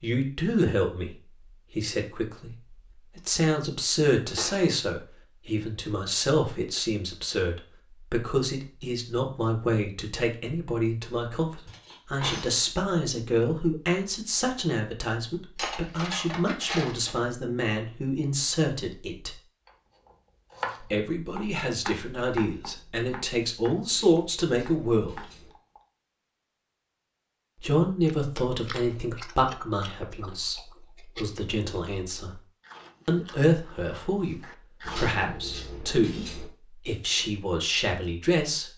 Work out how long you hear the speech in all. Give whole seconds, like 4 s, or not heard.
34 s.